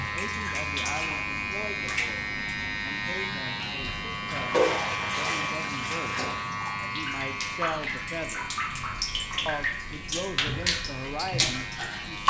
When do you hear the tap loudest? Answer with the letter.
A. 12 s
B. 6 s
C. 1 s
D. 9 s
A.